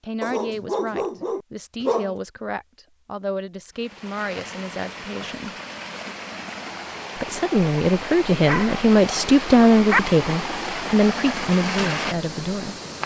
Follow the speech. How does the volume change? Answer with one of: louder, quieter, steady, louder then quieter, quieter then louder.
louder then quieter.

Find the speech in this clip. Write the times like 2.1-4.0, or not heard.
0.0-5.5, 7.2-12.8.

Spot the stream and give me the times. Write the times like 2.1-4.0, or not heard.
3.8-13.0.